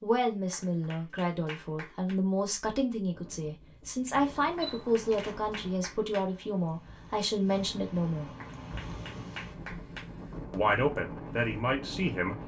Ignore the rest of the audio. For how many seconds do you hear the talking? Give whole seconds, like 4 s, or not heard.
10 s.